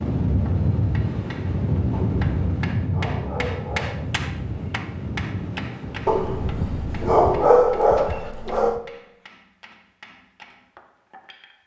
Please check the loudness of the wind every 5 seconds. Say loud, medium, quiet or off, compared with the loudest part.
loud, medium, off.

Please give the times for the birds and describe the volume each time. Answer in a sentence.
The birds can't be heard in this clip.